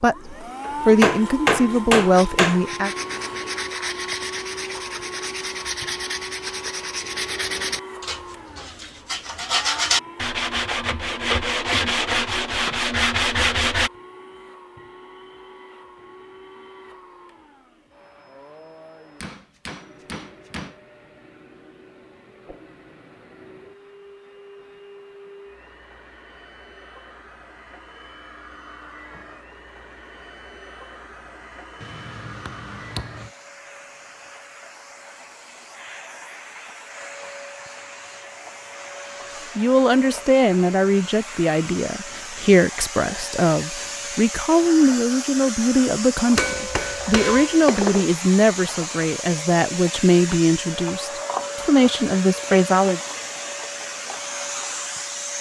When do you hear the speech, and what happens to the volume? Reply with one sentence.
You can hear the speech briefly from 0.0 to 2.9 s; and from 39.5 to 53.0 s, at a steady volume.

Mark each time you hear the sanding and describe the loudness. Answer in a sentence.
You can hear the sanding from 2.1 to 13.9 s, getting louder.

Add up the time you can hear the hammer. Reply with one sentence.
The hammer can be heard for 7 seconds in total.